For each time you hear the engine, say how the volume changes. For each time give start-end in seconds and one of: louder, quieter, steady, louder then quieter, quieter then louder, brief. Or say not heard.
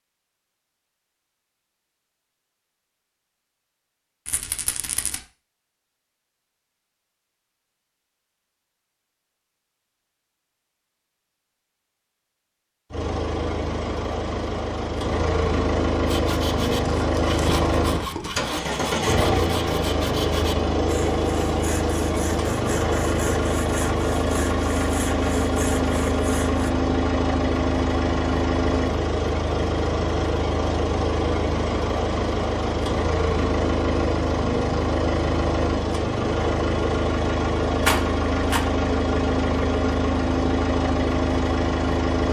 12.9-42.2 steady.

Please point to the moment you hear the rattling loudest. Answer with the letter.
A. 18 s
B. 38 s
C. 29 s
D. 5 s
B.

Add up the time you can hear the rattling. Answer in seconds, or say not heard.
3 s.